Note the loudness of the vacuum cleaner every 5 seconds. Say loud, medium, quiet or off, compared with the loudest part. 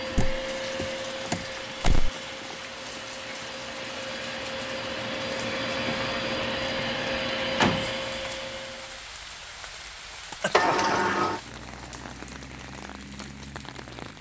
medium, loud, off.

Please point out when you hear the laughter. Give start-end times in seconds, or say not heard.
10.4-10.9.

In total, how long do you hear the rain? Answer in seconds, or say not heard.
14 s.